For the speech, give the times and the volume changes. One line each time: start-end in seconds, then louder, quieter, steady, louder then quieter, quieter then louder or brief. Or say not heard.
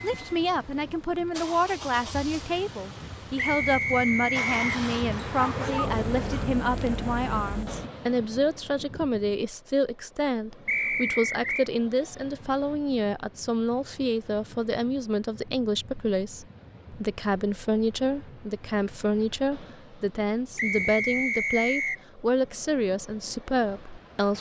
0.0-24.3 steady.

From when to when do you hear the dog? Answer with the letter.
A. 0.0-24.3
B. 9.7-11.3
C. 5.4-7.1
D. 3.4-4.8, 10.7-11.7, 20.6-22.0
C.